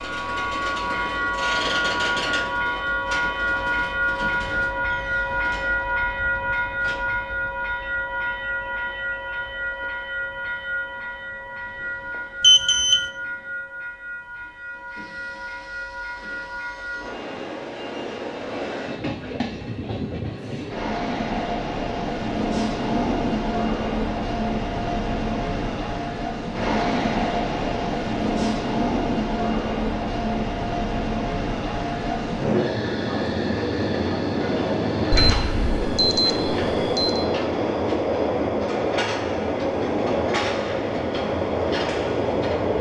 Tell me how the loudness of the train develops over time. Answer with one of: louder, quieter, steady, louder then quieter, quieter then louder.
quieter then louder.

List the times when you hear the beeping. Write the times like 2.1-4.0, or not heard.
12.4-13.1, 35.1-37.2.